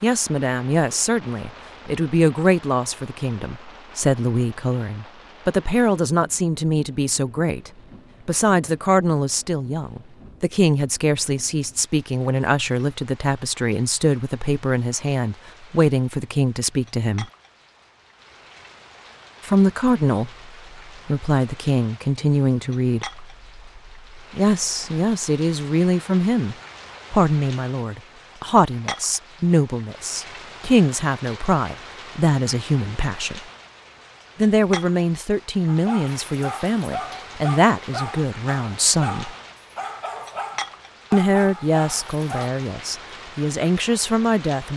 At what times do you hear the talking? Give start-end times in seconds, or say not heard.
0.0-17.2, 19.4-33.4, 34.4-39.3, 41.1-44.7.